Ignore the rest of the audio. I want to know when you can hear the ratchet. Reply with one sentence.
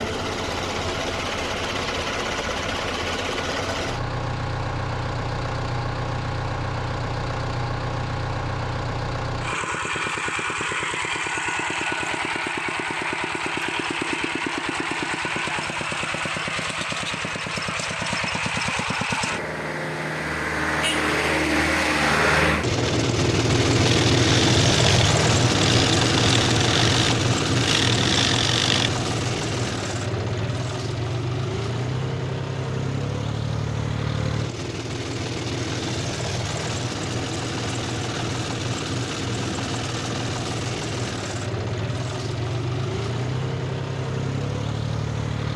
You can hear the ratchet from 23.8 to 28.9 s.